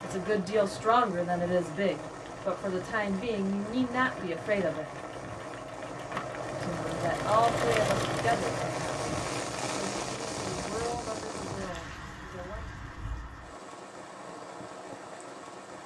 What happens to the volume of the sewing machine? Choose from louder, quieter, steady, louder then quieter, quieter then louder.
louder.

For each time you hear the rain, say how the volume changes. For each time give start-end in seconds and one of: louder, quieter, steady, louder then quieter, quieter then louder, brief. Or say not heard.
0.0-15.8 louder then quieter.